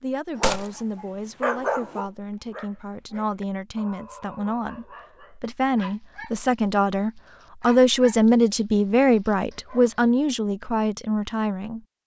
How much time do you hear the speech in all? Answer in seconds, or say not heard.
12 s.